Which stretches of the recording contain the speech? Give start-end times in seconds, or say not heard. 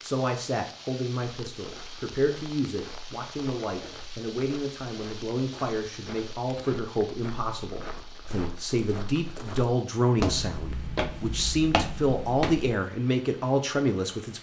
0.0-14.3.